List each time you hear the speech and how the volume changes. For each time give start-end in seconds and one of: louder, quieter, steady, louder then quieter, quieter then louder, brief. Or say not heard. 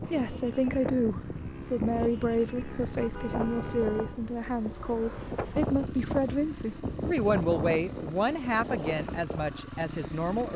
0.0-10.5 steady.